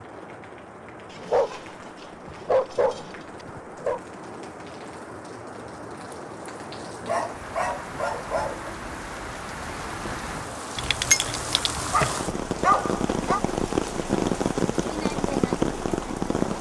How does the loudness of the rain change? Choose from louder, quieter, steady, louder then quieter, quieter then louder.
louder.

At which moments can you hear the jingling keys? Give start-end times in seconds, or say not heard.
10.8-12.2.